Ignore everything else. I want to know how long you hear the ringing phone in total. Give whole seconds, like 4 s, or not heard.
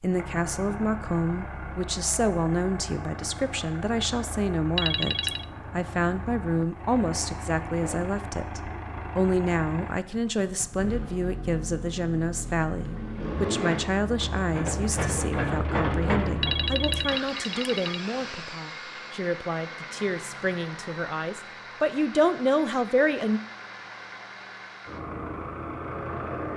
2 s.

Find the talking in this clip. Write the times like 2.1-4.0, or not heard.
0.0-23.4.